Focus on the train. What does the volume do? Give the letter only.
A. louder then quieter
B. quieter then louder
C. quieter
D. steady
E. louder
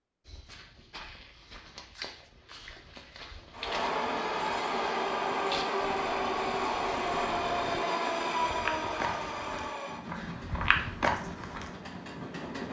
C.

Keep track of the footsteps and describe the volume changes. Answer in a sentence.
The loudness of the footsteps goes up.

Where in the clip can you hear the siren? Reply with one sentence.
You can't hear the siren here.